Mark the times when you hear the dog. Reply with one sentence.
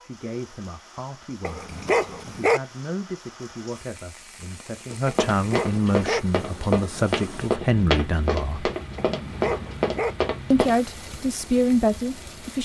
The dog can be heard from 1.4 to 2.6 s, from 5.3 to 6.2 s and from 8.9 to 10.2 s.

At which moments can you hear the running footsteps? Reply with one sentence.
The running footsteps can be heard from 4.9 to 10.8 s.